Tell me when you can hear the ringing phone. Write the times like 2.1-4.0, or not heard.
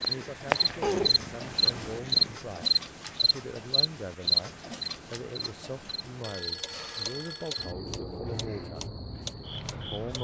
6.2-7.8.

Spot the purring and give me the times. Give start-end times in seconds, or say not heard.
0.0-2.4.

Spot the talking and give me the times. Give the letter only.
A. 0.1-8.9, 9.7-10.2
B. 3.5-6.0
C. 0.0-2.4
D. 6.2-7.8
A.